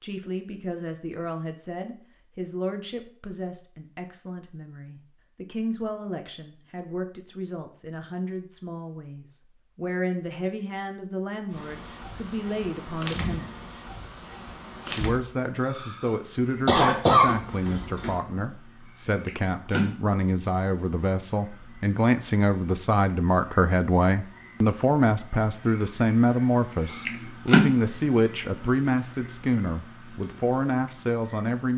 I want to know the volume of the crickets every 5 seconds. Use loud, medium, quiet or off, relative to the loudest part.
off, off, medium, medium, medium, loud, medium.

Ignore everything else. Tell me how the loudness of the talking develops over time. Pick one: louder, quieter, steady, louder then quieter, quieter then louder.
louder.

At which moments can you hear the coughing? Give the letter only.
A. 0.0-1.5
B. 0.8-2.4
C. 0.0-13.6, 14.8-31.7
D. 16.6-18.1
D.